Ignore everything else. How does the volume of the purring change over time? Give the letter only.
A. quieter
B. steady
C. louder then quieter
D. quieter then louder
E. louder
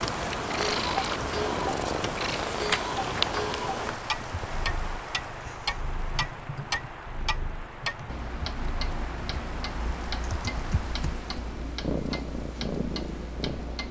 D.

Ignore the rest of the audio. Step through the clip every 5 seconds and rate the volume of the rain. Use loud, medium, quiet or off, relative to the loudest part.
loud, medium, medium.